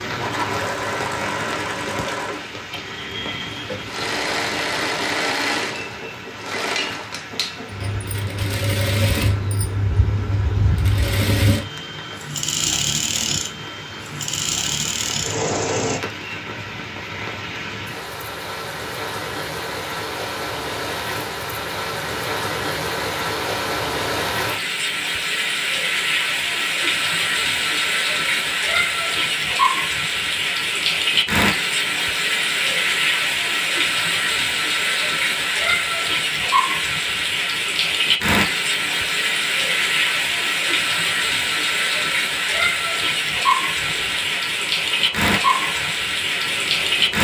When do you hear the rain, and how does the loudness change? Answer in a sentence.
You can hear the rain from 0.0 to 47.1 s, getting louder.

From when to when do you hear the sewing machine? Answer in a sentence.
You can hear the sewing machine from 0.0 to 16.0 s and from 43.8 to 47.1 s.